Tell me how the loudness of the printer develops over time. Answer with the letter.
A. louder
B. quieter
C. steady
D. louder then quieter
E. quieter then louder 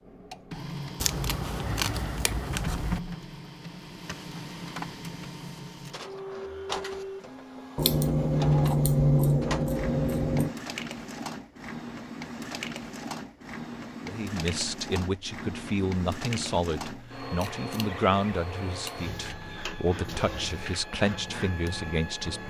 C.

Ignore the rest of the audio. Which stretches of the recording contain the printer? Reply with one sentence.
You can hear the printer from 0.0 to 22.4 s.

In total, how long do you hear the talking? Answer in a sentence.
You can hear the talking for 8 seconds altogether.